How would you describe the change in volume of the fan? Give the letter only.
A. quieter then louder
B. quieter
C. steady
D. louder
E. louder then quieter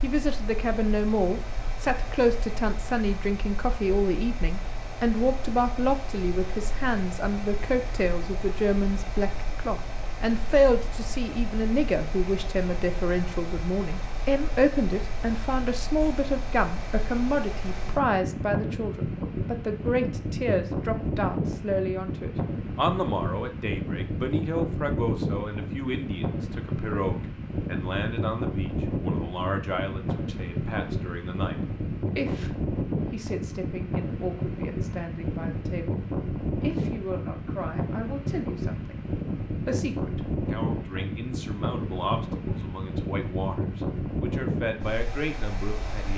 D.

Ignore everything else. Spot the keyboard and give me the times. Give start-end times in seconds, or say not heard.
not heard.